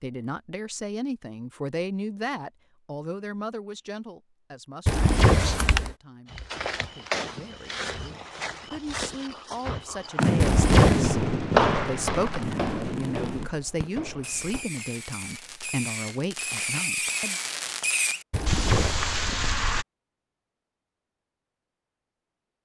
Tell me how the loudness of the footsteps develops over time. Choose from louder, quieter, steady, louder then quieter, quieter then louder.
louder then quieter.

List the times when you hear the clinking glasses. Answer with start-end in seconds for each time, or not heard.
not heard.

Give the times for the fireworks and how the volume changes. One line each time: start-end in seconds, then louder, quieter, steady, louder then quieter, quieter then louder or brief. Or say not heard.
10.2-19.9 quieter then louder.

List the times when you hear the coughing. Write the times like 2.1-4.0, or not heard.
4.8-6.0, 10.4-11.0, 18.3-19.0.